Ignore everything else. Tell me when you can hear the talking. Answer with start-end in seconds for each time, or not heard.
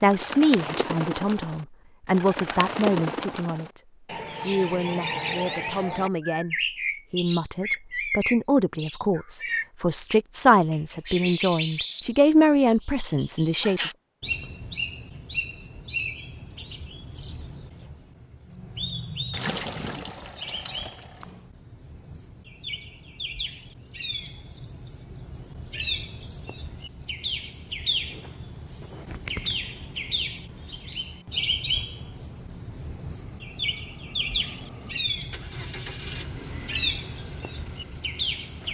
0.0-3.8, 4.5-13.9.